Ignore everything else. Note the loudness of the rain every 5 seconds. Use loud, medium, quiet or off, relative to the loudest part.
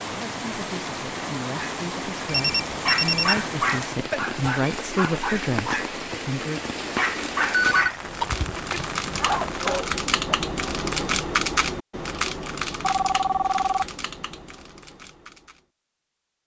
loud, loud, off, off.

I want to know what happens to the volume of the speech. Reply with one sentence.
The volume of the speech goes up.